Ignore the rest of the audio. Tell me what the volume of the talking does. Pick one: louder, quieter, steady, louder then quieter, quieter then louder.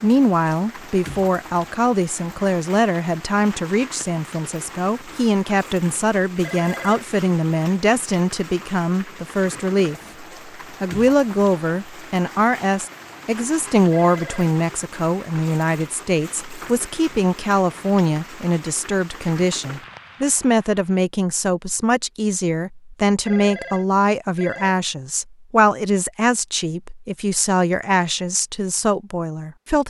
steady.